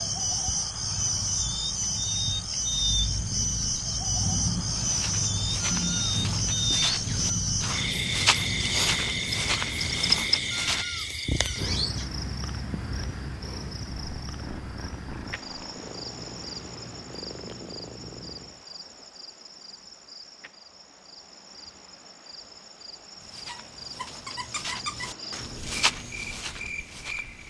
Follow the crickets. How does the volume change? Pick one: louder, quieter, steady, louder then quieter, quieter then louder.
quieter.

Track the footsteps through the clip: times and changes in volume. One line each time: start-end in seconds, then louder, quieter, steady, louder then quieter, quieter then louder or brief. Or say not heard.
4.7-10.8 louder
23.2-27.4 louder then quieter.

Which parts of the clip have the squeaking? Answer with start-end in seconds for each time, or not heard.
5.7-7.3, 10.7-12.1, 23.4-25.4.